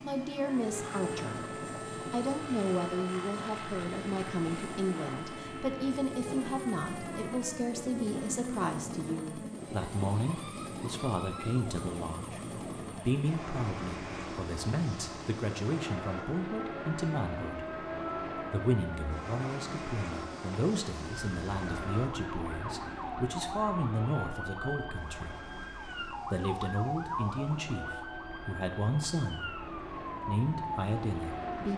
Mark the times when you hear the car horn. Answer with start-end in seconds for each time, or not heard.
not heard.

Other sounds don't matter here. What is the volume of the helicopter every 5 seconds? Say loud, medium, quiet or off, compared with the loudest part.
loud, loud, loud, loud, loud, medium, loud.